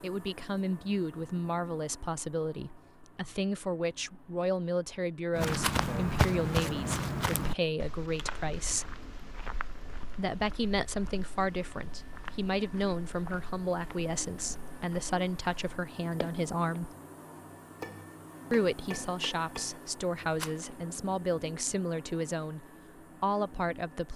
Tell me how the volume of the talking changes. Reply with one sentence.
The loudness of the talking stays about the same.